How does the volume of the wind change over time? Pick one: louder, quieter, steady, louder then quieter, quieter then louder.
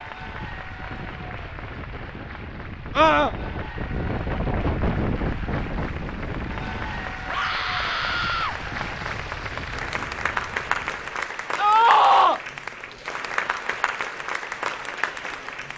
louder then quieter.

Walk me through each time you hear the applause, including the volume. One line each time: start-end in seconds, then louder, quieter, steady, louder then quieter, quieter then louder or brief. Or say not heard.
0.0-15.7 louder.